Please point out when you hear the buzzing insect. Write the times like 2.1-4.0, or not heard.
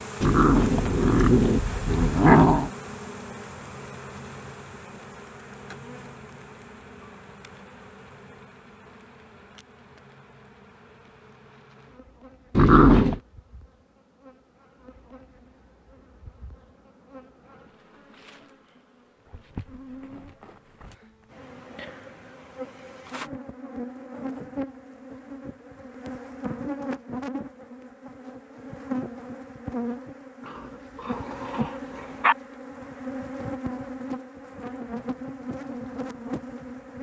0.0-36.9.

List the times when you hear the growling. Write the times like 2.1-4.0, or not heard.
0.2-2.7, 12.6-13.2, 30.4-32.4.